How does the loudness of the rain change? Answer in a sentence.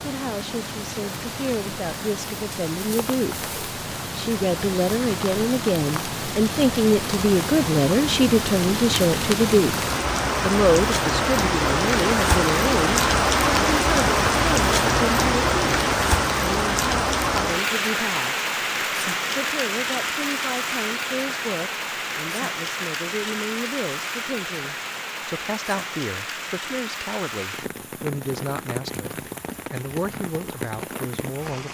The volume of the rain goes up, then down.